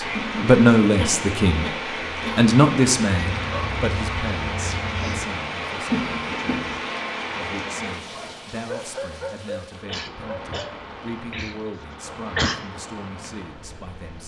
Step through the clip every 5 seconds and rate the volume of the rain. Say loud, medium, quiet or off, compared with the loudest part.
loud, loud, medium.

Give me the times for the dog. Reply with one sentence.
You can hear the dog from 3.1 to 5.2 s and from 8.1 to 10.6 s.